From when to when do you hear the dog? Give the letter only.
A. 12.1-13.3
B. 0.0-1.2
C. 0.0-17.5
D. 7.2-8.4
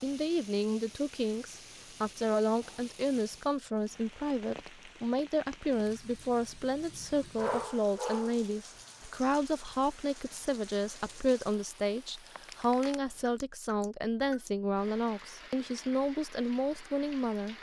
D.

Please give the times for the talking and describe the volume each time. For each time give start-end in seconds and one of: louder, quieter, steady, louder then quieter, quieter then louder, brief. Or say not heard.
0.0-17.5 steady.